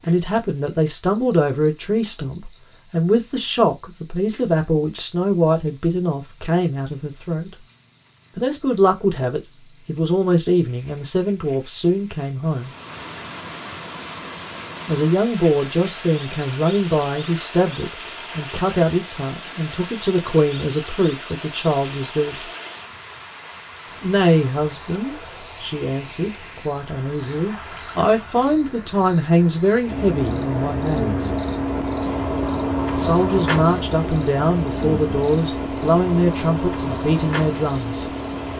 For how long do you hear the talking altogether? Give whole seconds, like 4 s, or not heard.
32 s.